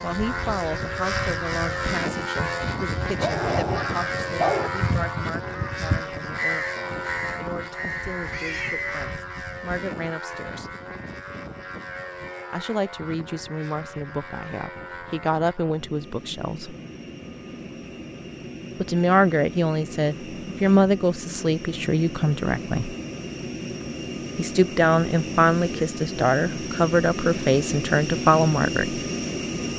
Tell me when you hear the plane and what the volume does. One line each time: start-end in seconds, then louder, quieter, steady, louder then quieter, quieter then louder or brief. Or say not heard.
0.0-29.7 quieter then louder.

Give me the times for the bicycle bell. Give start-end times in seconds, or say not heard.
not heard.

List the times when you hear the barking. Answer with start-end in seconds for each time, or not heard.
3.2-4.7.